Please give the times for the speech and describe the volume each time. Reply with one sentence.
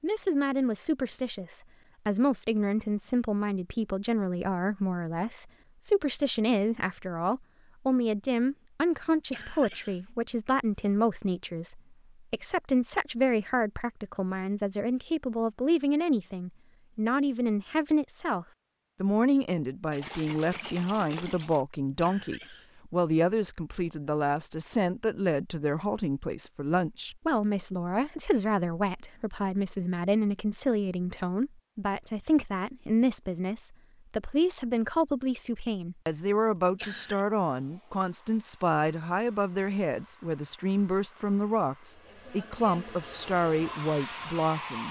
You can hear the speech from 0.0 to 44.8 s, at a steady volume.